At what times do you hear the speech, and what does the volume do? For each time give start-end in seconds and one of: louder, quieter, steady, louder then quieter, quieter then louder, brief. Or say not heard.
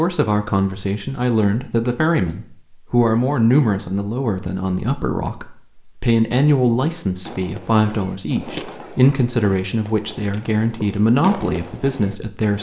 0.0-12.5 steady.